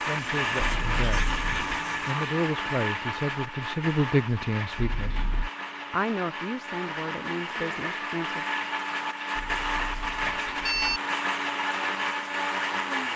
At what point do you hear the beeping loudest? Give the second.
11 s.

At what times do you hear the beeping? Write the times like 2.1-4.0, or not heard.
0.6-1.8, 4.8-5.5, 9.3-11.0.